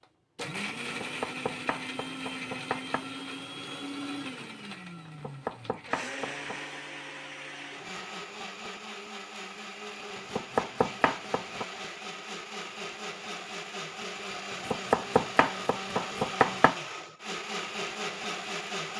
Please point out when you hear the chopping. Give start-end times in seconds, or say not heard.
0.8-3.0, 5.0-6.6, 10.2-11.7, 14.5-16.8.